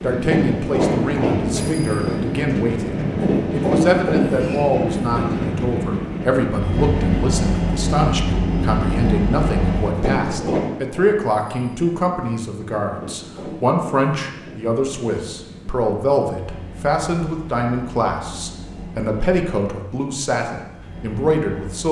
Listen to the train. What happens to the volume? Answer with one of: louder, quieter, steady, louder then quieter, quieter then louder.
quieter.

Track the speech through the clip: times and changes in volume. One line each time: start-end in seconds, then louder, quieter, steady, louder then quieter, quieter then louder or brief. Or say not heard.
0.0-21.8 steady.